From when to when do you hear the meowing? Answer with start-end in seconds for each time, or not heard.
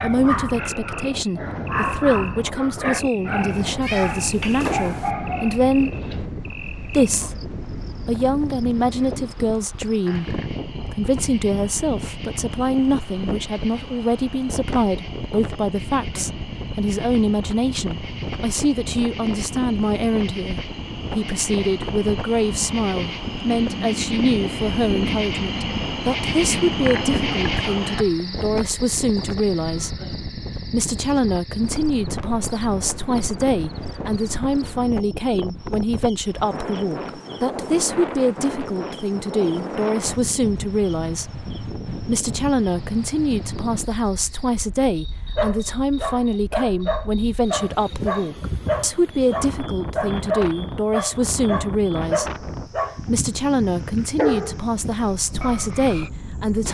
3.8-5.1.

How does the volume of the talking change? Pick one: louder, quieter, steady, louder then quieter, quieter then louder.
steady.